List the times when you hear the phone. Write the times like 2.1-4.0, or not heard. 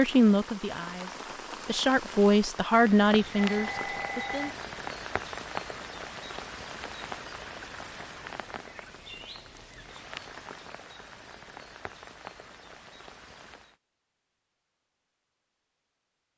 3.3-4.5.